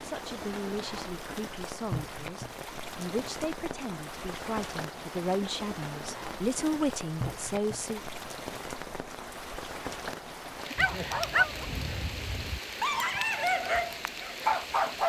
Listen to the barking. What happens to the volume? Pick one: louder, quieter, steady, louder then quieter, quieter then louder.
quieter then louder.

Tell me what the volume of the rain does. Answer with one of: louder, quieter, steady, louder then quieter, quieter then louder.
steady.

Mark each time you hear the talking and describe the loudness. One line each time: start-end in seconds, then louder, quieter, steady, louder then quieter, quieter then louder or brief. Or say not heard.
0.0-8.0 louder.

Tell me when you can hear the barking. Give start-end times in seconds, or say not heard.
10.8-15.0.